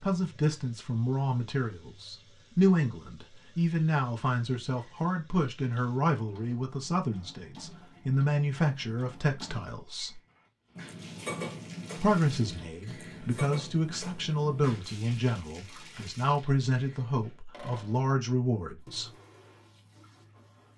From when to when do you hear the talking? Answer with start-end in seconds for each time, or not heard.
0.0-10.2, 11.9-19.1.